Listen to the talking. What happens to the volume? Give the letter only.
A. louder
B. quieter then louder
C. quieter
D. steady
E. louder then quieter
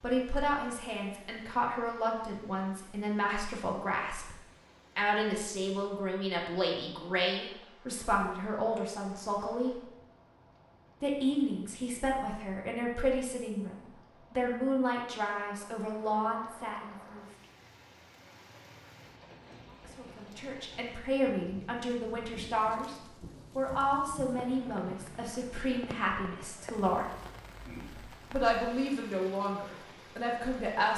D.